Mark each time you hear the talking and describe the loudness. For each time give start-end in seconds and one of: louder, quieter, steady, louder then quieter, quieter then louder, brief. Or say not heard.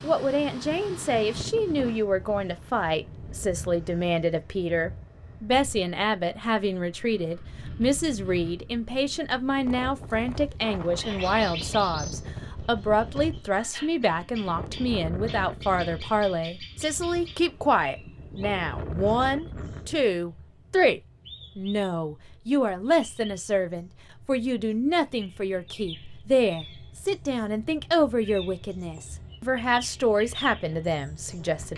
0.0-31.7 steady.